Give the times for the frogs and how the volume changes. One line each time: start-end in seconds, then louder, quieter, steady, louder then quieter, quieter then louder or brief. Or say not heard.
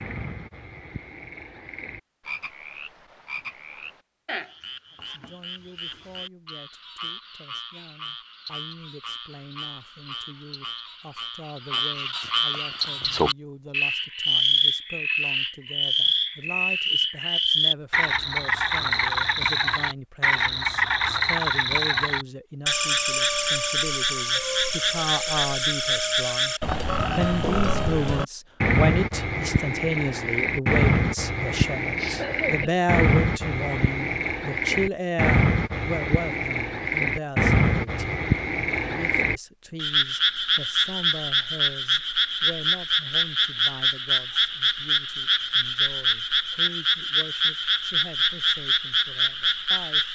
0.0-50.0 louder.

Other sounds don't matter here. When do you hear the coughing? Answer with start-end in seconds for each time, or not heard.
31.9-32.8.